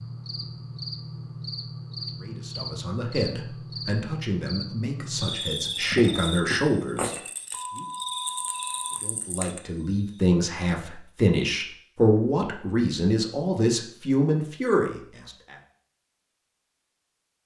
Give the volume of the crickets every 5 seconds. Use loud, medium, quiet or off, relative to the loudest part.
loud, loud, off, off.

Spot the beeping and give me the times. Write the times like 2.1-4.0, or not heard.
7.5-9.1.